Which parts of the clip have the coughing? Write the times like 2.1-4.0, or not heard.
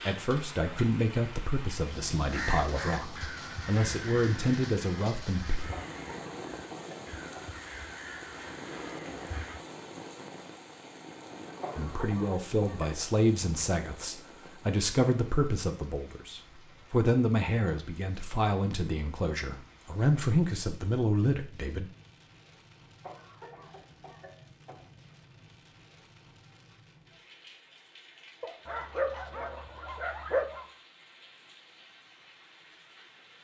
5.7-7.6, 11.6-13.0, 23.0-24.9.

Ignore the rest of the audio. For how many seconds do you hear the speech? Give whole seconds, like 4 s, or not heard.
16 s.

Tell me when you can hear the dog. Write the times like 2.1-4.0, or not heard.
28.4-30.6.